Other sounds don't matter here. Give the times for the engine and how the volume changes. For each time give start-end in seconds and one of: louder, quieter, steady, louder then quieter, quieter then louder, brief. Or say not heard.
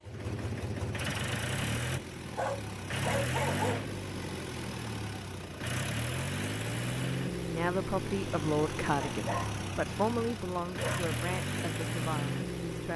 0.0-12.9 steady.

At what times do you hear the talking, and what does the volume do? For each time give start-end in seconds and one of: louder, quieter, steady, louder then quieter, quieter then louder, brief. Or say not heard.
7.5-12.9 quieter.